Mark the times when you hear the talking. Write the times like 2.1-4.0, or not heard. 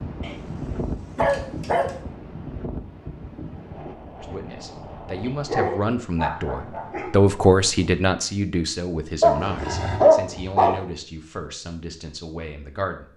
4.2-13.1.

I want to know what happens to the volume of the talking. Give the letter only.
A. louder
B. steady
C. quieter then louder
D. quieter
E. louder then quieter
E.